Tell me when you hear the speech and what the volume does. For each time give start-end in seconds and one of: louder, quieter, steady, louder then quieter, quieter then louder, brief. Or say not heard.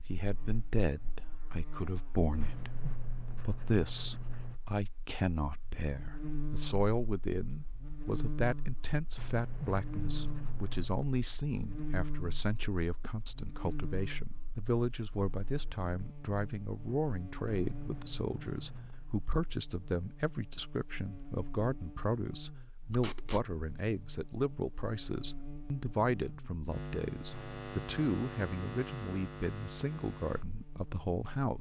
0.0-31.5 steady.